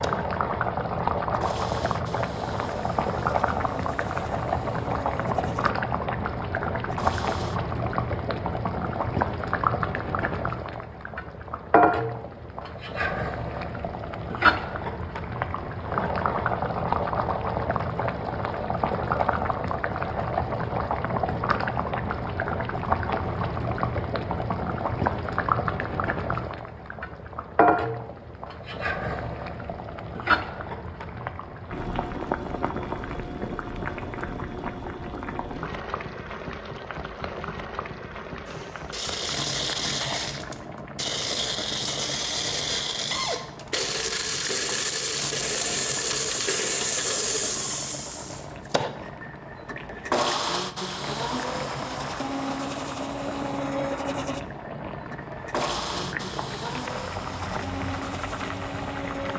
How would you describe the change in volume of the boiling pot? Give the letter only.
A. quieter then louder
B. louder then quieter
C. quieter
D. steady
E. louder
C.